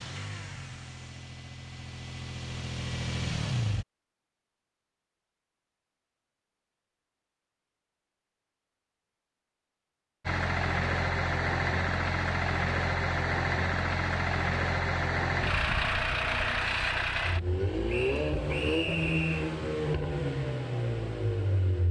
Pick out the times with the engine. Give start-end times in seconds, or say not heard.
0.0-3.9, 10.2-21.8.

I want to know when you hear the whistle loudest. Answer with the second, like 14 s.
19 s.